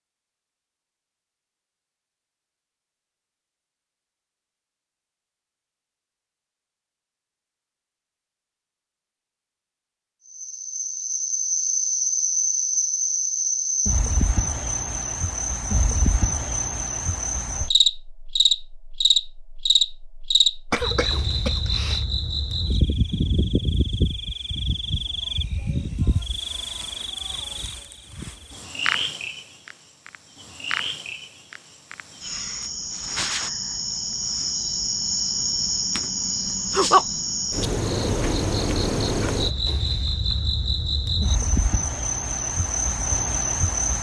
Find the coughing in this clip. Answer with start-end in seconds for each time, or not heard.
20.7-22.1.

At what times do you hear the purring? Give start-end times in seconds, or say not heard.
not heard.